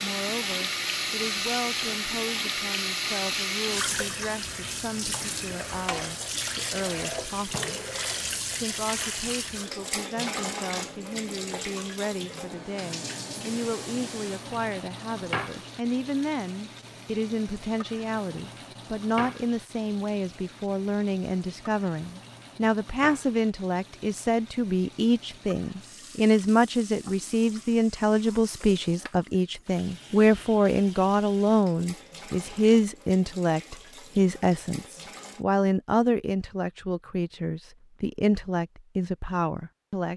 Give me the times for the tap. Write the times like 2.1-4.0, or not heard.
0.0-35.5.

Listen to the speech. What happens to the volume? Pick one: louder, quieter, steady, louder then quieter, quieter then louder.
louder.